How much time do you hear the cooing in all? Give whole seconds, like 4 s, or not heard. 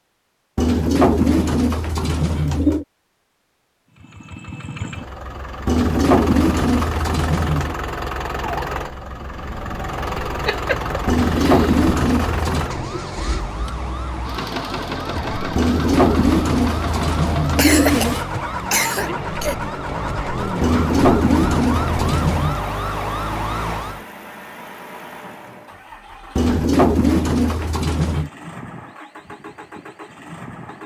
13 s.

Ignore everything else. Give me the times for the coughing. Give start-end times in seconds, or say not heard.
10.4-11.8, 17.6-19.6.